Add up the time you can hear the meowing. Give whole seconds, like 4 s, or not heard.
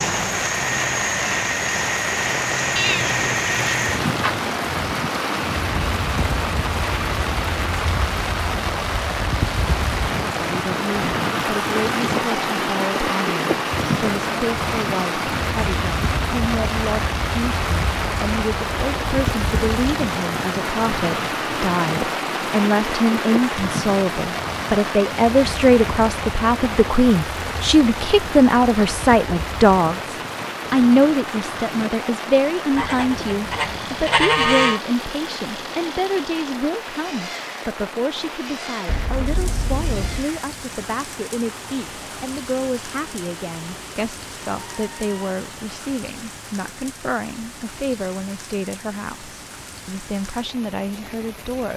3 s.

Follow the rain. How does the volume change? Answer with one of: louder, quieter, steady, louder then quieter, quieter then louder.
quieter.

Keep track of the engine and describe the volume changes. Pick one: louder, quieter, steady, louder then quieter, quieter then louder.
quieter.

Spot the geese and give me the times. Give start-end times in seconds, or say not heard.
32.8-34.8.